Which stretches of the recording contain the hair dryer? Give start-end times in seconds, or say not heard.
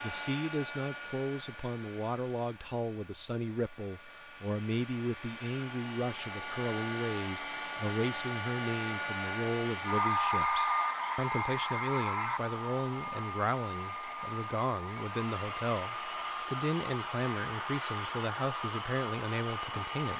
0.0-20.1.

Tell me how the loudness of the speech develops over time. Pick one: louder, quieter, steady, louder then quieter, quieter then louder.
steady.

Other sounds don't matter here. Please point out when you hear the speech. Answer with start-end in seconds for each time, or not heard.
0.0-20.1.